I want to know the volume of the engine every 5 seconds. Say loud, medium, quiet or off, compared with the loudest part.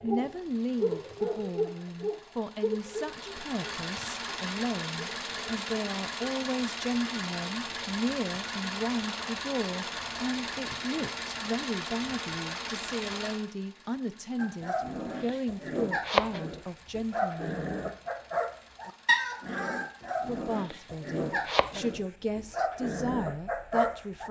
medium, loud, loud, quiet, quiet.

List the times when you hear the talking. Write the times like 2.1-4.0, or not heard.
0.0-17.6, 20.2-24.2.